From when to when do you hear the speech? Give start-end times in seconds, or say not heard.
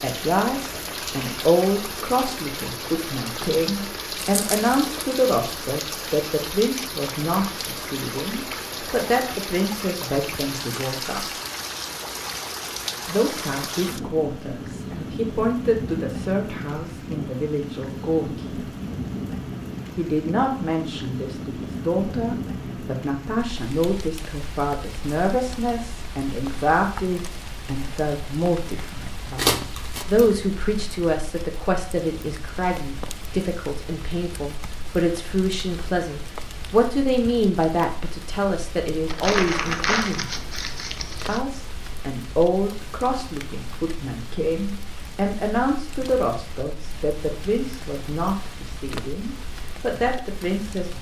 0.0-11.2, 13.1-18.6, 19.9-40.3, 41.2-50.9.